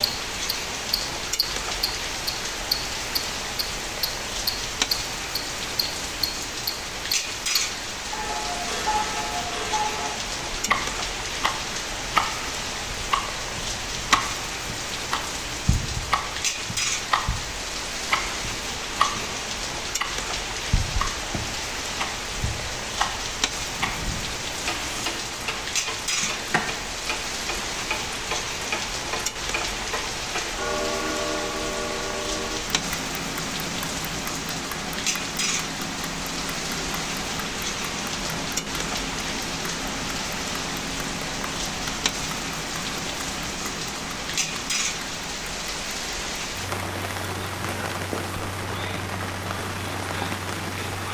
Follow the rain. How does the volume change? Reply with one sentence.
The loudness of the rain stays about the same.